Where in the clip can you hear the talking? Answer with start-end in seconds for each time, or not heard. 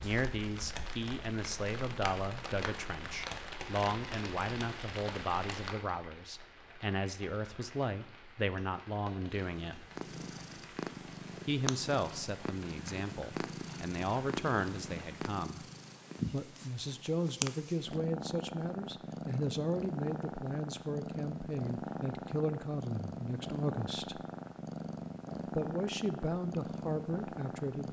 0.0-9.8, 11.4-15.7, 16.3-24.2, 25.6-27.8.